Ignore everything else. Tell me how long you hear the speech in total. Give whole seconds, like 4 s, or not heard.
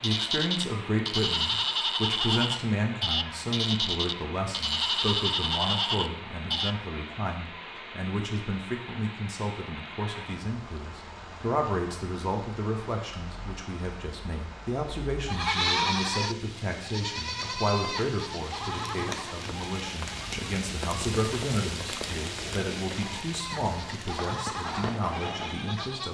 26 s.